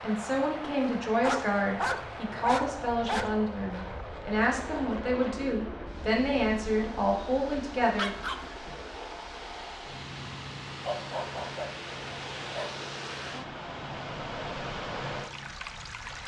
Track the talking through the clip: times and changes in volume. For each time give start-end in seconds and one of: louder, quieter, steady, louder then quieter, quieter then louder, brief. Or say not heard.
0.0-8.2 steady.